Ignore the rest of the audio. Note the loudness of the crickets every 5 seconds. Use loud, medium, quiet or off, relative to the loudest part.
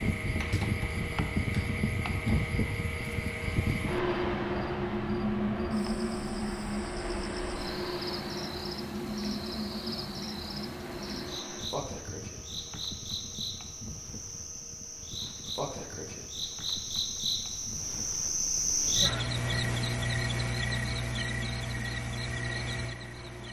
medium, medium, medium, loud, loud.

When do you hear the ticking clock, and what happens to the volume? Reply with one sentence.
The ticking clock can't be heard in this clip.